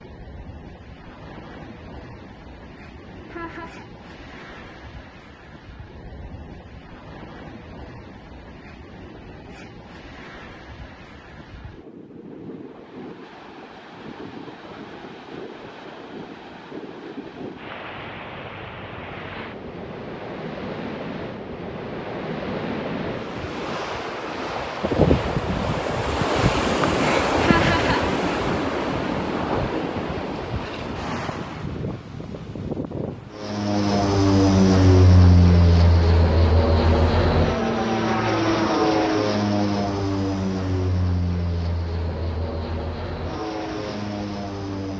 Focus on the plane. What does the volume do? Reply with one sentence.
The loudness of the plane goes down.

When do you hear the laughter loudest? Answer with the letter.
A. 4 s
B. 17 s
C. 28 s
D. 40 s
C.